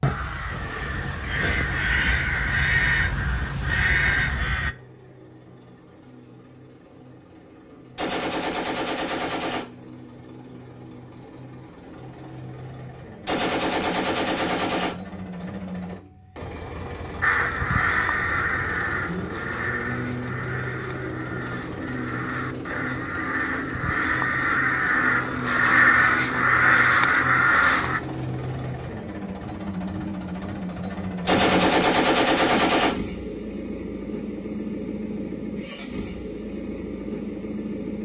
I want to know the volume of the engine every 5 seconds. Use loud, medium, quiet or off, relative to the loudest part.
quiet, quiet, medium, loud, loud, loud, loud, loud.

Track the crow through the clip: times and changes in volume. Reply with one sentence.
You can hear the crow from 0.0 to 4.8 s, getting louder; and from 17.2 to 28.0 s, getting quieter then louder.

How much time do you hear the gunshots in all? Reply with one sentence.
The gunshots can be heard for 5 seconds in total.